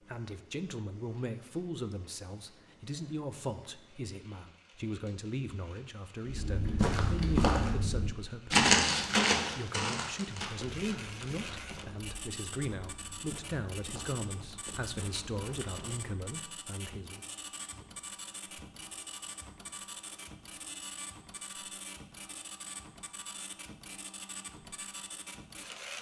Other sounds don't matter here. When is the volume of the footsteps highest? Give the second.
9 s.